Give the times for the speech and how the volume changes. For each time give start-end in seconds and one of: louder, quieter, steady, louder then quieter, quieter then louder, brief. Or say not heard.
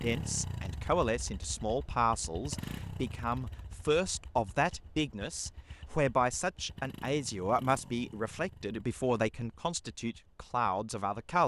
0.0-11.4 steady.